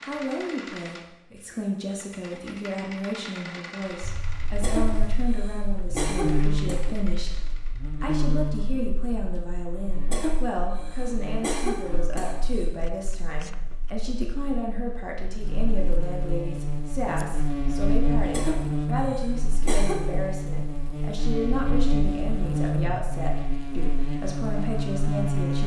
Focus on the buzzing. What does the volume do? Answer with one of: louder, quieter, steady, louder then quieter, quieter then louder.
quieter then louder.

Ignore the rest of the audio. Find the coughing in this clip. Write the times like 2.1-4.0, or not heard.
4.6-6.8, 10.1-12.7, 18.3-20.1.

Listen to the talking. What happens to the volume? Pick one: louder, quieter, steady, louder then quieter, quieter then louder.
steady.